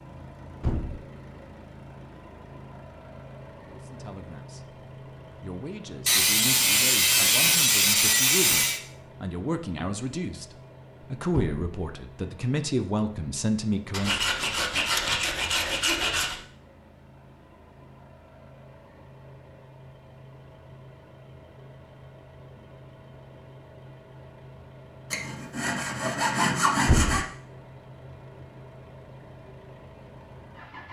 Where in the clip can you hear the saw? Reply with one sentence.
You can hear the saw from 6.0 to 8.8 s, from 13.9 to 16.4 s and from 25.1 to 27.2 s.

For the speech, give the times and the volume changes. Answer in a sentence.
The speech can be heard from 3.6 to 14.2 s, getting louder.